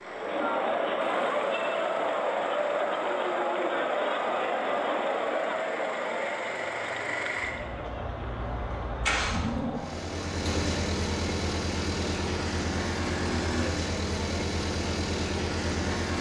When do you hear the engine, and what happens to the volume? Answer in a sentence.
You can hear the engine from 0.0 to 16.1 s, getting louder.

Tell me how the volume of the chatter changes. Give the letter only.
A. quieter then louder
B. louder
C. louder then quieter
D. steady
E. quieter
E.